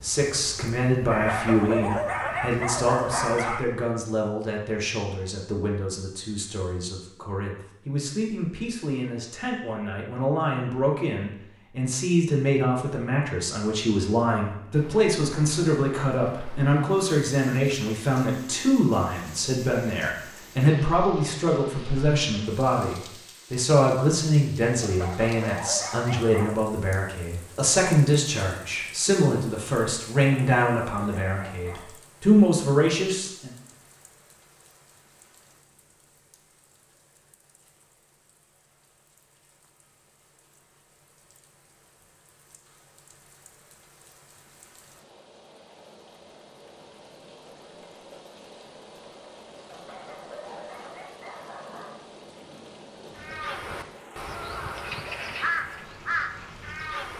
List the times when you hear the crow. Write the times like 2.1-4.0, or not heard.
0.0-3.5, 53.1-57.1.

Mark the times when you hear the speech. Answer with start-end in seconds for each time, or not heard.
0.0-33.5.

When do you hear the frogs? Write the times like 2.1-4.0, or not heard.
not heard.